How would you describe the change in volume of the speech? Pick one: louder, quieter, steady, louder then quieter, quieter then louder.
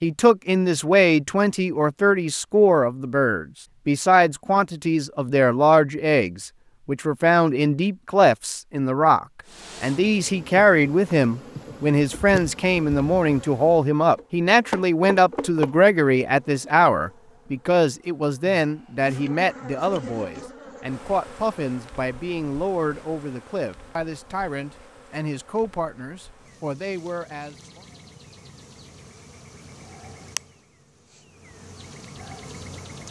quieter.